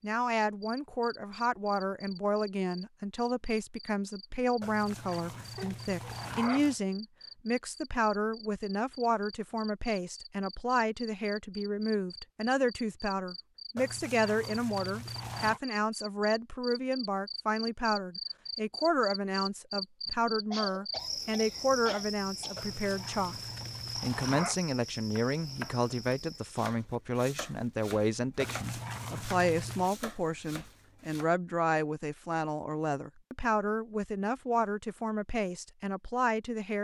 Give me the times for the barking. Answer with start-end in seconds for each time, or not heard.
4.6-6.8, 13.8-15.6, 22.6-24.6, 28.4-29.9.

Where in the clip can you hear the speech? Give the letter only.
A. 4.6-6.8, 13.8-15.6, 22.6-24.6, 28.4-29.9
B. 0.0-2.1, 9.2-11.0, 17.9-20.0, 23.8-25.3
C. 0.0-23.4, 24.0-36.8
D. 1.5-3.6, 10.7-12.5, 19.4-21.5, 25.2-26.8
C.